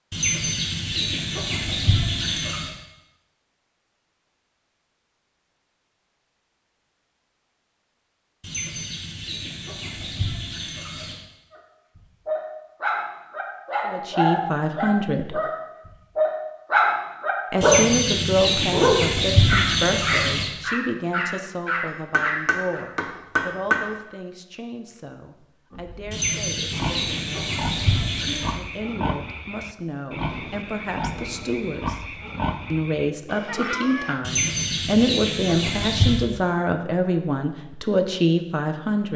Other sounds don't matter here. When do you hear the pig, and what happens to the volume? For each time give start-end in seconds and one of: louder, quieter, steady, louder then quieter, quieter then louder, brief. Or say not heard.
25.7-34.3 steady.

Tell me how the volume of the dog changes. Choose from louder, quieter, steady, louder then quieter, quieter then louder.
louder then quieter.